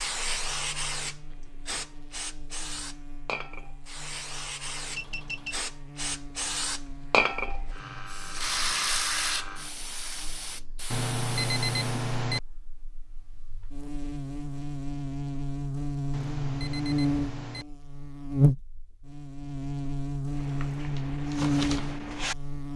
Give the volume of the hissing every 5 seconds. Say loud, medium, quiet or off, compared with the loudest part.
medium, loud, medium, off, off.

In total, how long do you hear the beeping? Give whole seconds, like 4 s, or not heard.
4 s.